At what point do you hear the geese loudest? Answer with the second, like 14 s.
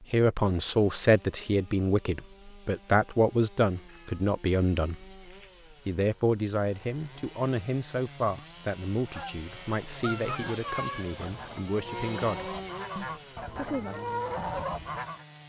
14 s.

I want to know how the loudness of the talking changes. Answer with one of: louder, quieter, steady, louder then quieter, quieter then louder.
quieter.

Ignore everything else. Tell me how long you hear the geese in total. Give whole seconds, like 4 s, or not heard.
6 s.